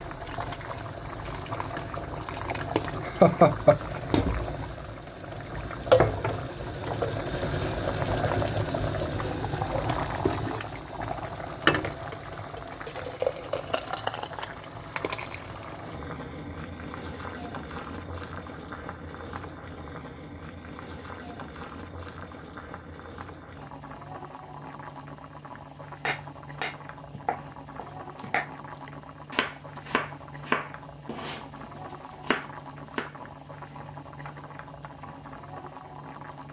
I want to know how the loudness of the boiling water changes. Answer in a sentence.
The loudness of the boiling water goes down.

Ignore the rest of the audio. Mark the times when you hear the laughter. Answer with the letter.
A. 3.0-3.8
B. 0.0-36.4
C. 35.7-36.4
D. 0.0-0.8
A.